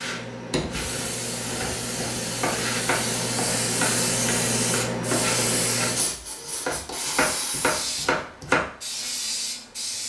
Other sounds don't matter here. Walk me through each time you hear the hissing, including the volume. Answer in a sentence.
The hissing can be heard from 0.0 to 10.0 s, getting louder then quieter.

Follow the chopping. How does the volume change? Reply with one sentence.
The loudness of the chopping goes up.